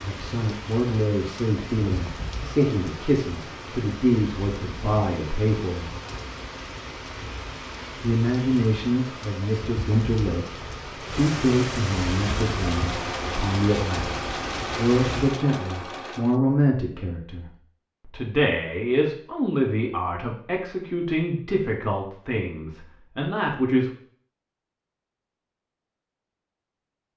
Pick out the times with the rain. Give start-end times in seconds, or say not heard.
0.0-15.4.